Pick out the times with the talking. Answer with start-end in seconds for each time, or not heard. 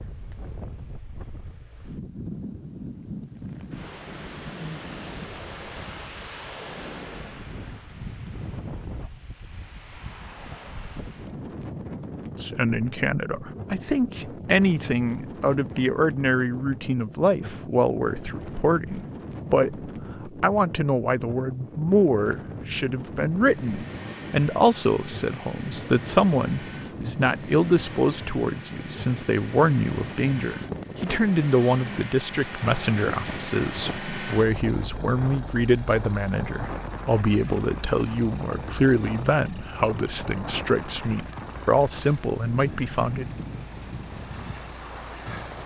12.4-43.3.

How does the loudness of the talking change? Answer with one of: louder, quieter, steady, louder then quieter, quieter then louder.
steady.